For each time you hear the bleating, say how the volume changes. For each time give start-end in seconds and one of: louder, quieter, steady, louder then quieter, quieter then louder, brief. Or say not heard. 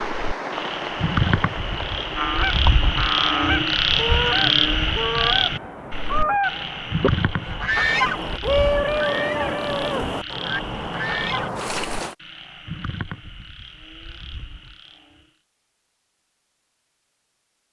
not heard.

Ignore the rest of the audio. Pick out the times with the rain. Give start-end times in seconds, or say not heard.
0.0-12.2.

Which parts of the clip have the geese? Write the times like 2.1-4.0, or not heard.
2.1-11.5.